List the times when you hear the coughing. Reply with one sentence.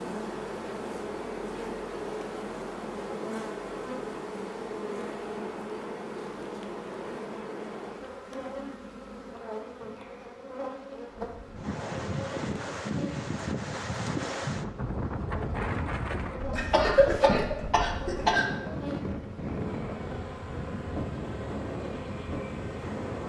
You can hear the coughing from 16.5 to 18.4 s.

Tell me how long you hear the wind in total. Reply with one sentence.
The wind can be heard for 12 seconds in total.